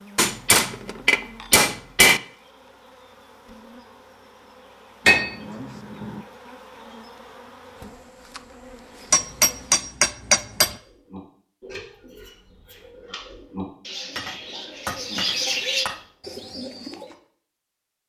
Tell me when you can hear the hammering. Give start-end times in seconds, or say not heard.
0.1-2.2, 5.0-6.2, 9.1-10.8, 14.2-16.1.